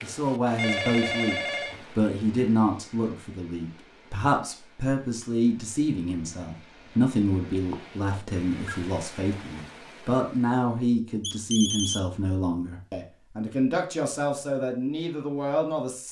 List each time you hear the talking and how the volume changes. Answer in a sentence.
You can hear the talking from 0.0 to 16.0 s, at a steady volume.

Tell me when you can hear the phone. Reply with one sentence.
The phone can be heard from 0.6 to 1.9 s, from 7.7 to 8.8 s and from 11.2 to 12.0 s.